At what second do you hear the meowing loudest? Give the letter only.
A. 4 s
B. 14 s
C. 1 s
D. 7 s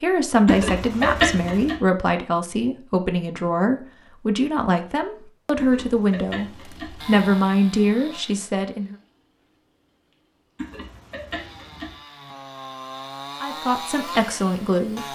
C.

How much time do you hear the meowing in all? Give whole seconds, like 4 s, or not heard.
4 s.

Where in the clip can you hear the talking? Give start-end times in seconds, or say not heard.
0.0-8.9, 13.4-15.1.